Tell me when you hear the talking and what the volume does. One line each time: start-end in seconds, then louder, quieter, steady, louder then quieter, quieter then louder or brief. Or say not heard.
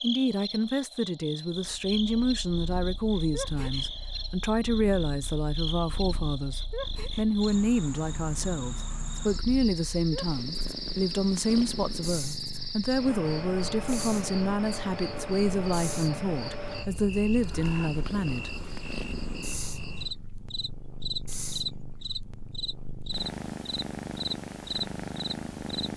0.0-18.6 steady.